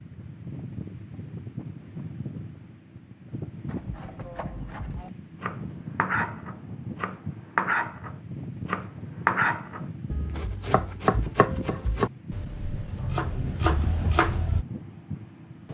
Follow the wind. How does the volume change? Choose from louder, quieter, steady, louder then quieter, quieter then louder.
steady.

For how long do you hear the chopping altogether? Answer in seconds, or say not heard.
11 s.